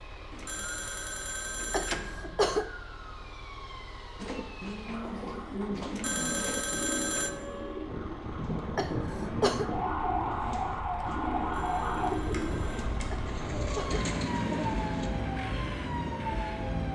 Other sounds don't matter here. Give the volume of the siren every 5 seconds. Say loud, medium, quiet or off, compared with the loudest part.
quiet, loud, loud, loud.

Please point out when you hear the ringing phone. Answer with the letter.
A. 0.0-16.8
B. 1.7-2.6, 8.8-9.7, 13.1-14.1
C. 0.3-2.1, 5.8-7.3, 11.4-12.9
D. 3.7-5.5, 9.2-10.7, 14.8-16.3
C.